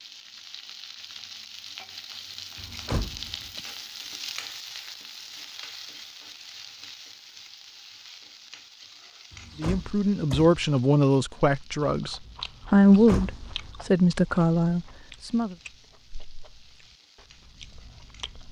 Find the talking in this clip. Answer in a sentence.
The talking can be heard from 9.6 to 15.6 s.